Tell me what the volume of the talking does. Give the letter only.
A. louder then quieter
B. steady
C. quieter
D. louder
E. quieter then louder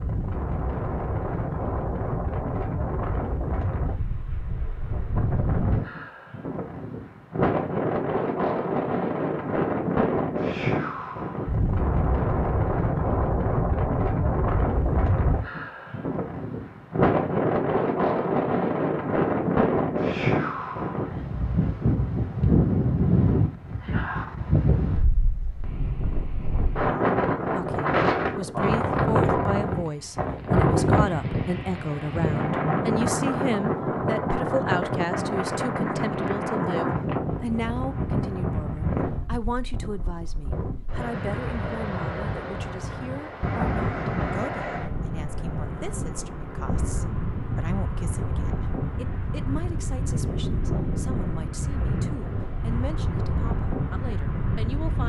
C.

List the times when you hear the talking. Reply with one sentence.
The talking can be heard from 27.5 to 55.0 s.